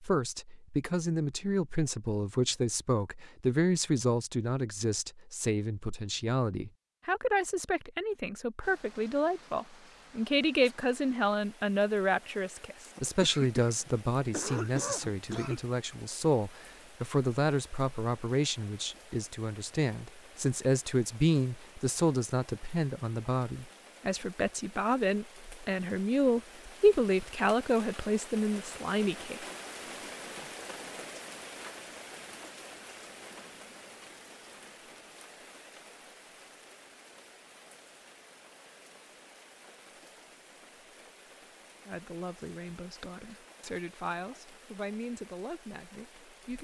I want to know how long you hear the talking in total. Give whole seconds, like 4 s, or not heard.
34 s.